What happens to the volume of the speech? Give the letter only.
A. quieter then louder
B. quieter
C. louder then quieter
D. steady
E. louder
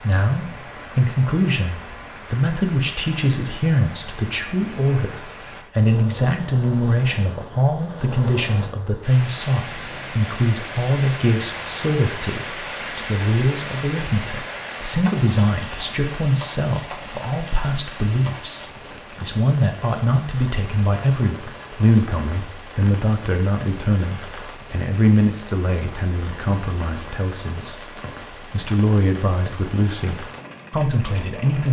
D.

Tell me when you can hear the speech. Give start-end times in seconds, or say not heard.
0.0-31.6.